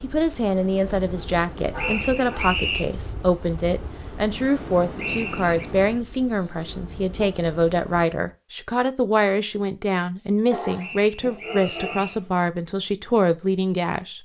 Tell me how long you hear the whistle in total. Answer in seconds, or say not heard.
3 s.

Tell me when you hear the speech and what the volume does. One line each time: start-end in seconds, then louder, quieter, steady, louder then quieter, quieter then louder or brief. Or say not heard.
0.0-14.2 steady.